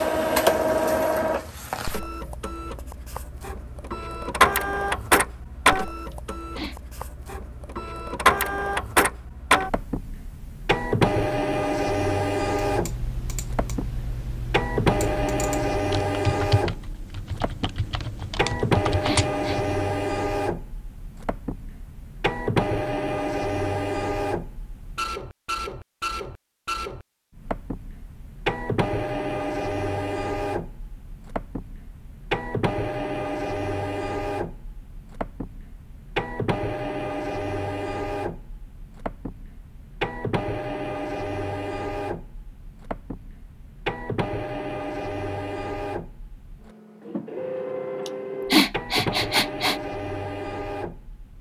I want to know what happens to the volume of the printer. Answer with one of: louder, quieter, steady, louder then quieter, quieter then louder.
quieter.